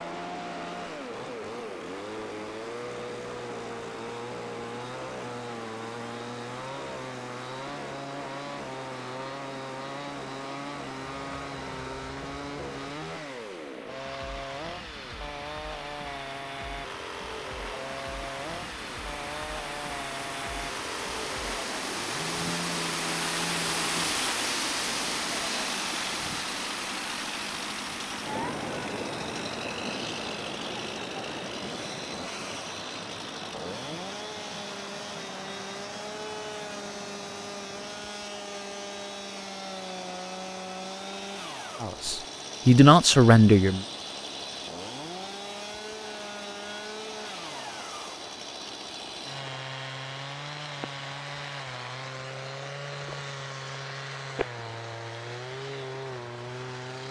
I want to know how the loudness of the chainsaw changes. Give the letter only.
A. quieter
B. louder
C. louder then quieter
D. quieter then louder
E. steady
E.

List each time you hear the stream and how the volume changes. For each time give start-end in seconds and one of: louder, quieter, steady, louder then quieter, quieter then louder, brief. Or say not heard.
0.0-57.0 louder then quieter.